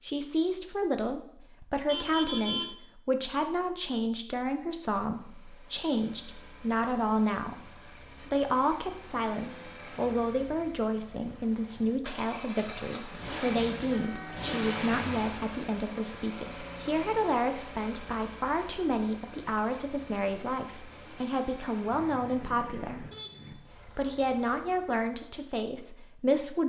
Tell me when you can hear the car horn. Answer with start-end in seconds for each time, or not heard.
1.9-2.7, 13.7-15.3, 21.9-23.6.